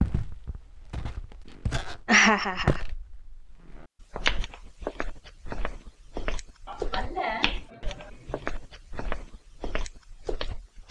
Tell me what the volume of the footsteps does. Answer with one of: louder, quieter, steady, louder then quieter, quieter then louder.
louder then quieter.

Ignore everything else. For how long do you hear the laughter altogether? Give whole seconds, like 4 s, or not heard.
3 s.